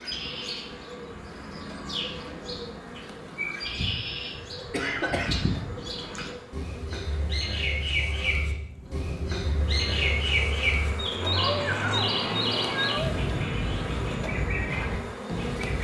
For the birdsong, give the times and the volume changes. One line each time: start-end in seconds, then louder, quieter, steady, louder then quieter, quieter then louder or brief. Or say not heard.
0.0-15.7 louder.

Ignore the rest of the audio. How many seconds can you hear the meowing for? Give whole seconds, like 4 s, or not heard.
2 s.